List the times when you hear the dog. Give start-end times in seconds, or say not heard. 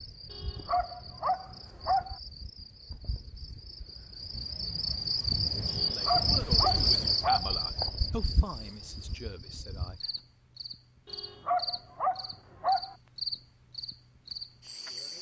0.3-2.1, 5.7-7.5, 11.1-12.9.